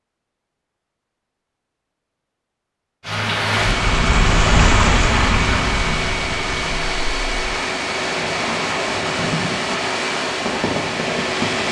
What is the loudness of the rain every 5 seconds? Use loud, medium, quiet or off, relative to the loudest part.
loud, medium, medium.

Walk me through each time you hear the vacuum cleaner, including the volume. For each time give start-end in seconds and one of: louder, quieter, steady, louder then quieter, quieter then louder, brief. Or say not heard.
3.5-11.6 steady.